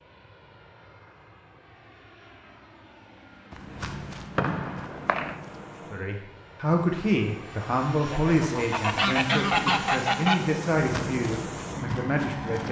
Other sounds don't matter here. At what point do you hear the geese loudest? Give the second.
10 s.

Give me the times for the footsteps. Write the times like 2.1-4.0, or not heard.
3.5-5.8, 10.8-12.6.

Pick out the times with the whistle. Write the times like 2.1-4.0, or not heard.
4.3-5.4.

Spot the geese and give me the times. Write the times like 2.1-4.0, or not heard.
8.1-10.4.